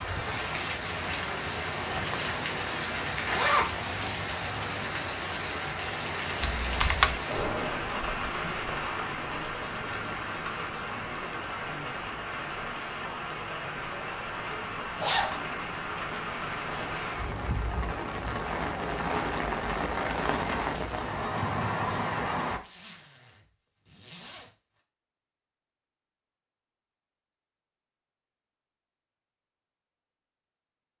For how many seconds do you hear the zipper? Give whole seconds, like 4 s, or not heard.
4 s.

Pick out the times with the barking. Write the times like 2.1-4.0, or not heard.
not heard.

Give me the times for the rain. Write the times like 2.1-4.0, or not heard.
0.0-22.6.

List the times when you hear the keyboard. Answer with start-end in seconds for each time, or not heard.
6.4-7.2.